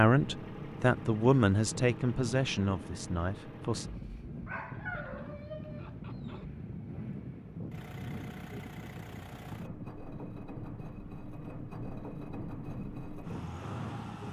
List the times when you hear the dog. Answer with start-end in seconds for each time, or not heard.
4.5-6.5.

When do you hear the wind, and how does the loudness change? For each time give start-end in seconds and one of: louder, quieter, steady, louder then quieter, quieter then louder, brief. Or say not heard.
0.1-14.2 steady.